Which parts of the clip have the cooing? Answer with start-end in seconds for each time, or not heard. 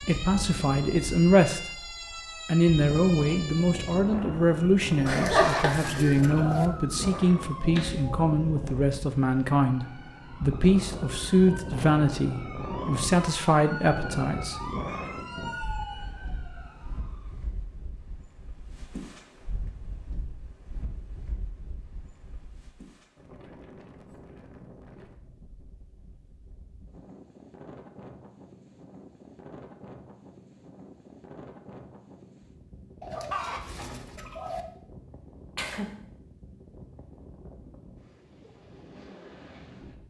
5.0-6.7, 33.0-34.6.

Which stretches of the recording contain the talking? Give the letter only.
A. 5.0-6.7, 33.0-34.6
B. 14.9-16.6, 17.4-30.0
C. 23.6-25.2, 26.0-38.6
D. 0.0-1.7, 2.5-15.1
D.